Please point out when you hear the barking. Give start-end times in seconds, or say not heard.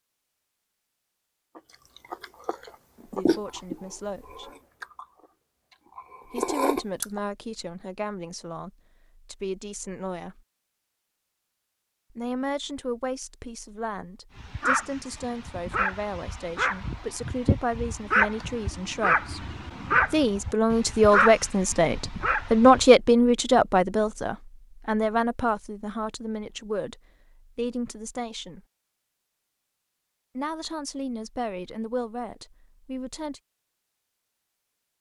14.3-22.9.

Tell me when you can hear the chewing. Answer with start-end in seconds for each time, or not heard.
1.6-7.2.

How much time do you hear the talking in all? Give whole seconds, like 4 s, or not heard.
25 s.